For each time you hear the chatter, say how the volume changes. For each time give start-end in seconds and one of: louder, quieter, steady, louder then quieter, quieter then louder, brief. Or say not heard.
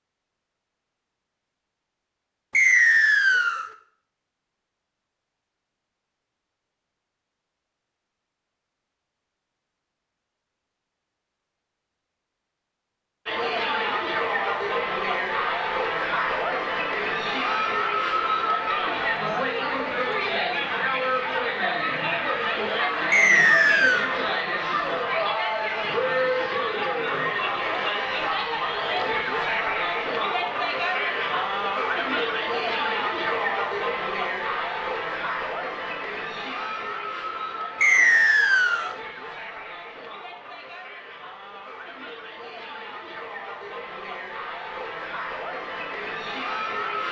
13.2-47.0 quieter.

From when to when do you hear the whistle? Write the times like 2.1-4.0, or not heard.
2.5-3.6, 23.1-24.1, 37.8-38.9.